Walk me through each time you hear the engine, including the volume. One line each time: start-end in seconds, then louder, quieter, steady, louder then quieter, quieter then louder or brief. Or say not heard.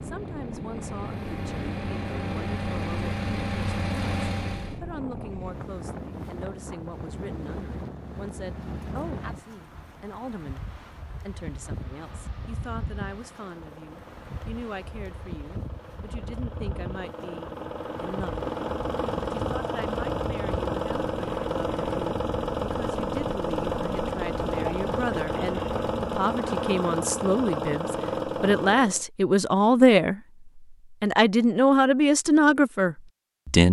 0.0-4.8 louder
11.6-29.1 louder.